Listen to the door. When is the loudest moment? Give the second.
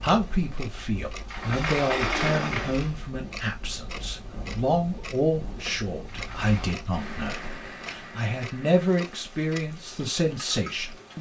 2 s.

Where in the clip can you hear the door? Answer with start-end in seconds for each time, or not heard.
1.2-3.0, 6.0-6.8.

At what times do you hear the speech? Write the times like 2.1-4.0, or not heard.
0.0-11.1.